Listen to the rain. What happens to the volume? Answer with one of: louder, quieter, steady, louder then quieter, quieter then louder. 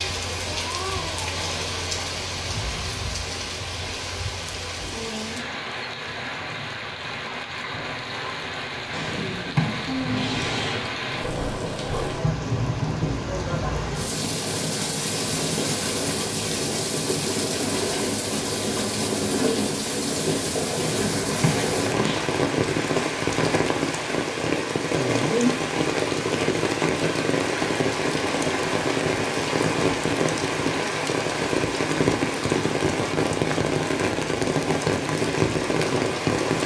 louder.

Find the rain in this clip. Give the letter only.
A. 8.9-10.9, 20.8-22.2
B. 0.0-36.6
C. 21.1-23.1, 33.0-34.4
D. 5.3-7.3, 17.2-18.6
B.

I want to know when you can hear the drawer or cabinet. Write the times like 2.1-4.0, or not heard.
8.9-10.9, 20.8-22.2.